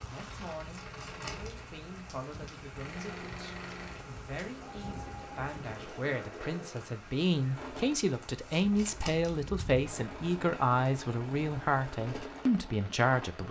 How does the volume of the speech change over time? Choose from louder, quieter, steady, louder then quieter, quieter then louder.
louder.